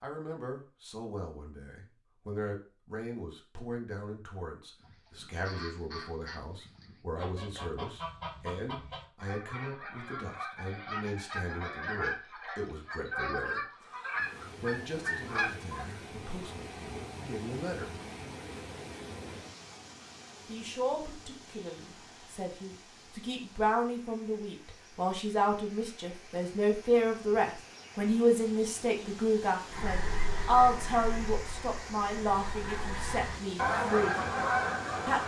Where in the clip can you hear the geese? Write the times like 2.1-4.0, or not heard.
4.8-15.8, 29.7-35.2.